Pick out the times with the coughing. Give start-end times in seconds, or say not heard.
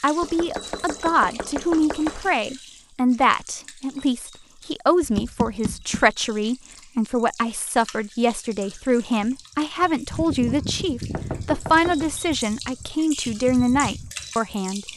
not heard.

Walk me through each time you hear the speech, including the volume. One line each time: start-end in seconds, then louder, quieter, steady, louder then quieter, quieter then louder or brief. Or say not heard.
0.0-14.8 steady.